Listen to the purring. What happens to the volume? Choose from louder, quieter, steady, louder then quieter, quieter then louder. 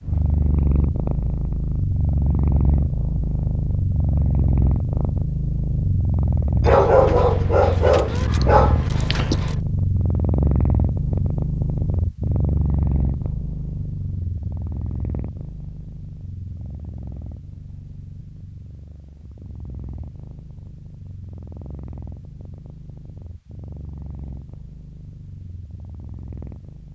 quieter.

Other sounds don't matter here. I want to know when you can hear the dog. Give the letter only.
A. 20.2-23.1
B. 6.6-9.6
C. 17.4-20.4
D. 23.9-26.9
B.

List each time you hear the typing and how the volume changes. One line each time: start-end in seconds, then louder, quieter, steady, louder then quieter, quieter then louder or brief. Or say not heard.
not heard.